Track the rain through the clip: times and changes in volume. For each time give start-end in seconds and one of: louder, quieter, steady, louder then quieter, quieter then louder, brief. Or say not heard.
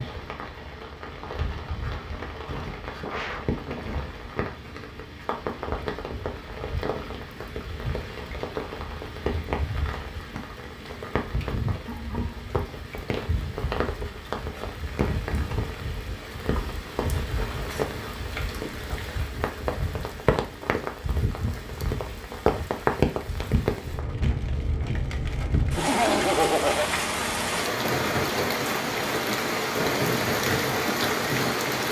0.0-31.8 louder.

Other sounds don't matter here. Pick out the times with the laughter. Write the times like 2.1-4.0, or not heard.
3.0-4.1, 11.8-12.5, 25.8-27.0.